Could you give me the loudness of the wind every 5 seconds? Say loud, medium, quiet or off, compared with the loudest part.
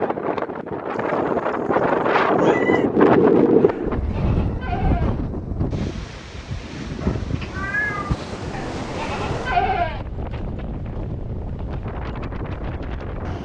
loud, medium, quiet.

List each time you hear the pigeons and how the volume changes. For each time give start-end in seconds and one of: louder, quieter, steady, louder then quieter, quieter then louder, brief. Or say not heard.
not heard.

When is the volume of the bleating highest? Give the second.
10 s.